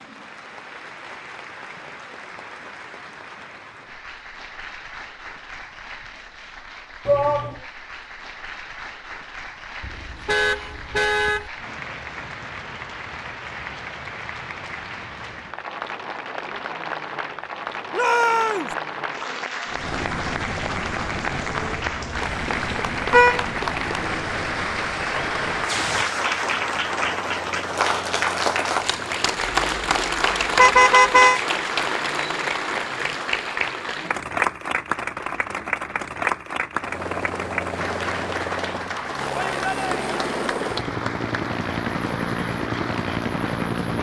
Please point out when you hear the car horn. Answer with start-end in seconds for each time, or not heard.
9.8-11.5, 22.2-23.4, 30.6-31.4.